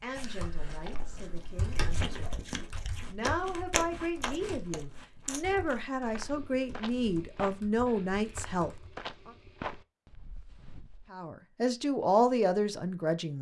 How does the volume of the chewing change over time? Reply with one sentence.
The volume of the chewing goes up, then down.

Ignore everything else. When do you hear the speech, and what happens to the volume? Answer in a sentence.
The speech can be heard from 0.0 to 9.3 s, getting louder; and briefly from 11.1 to 13.3 s.